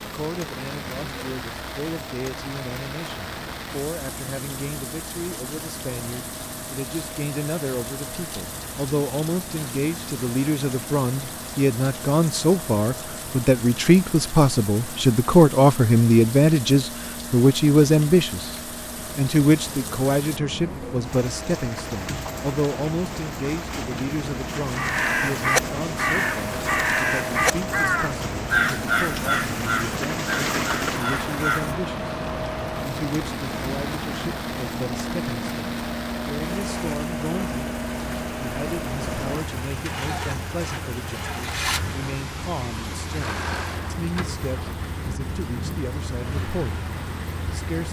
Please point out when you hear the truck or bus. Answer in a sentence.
You can hear the truck or bus from 0.0 to 47.8 s.